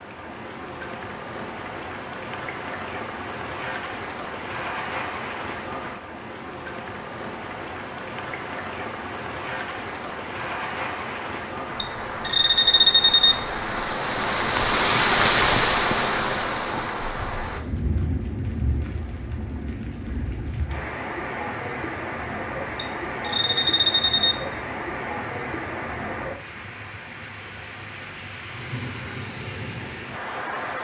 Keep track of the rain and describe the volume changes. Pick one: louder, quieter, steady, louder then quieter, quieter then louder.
louder then quieter.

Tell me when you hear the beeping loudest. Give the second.
13 s.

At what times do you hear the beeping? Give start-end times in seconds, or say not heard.
11.8-13.4, 22.8-24.4.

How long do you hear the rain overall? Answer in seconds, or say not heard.
31 s.